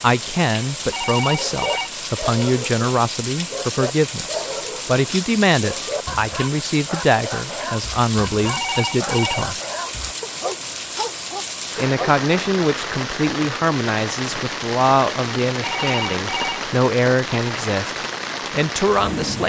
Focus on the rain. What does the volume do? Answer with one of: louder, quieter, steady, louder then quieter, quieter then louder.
steady.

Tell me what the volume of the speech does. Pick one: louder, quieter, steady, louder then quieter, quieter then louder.
steady.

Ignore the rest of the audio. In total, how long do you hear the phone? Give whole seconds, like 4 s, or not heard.
3 s.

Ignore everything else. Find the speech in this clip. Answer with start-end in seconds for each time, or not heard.
0.0-9.6, 11.8-19.4.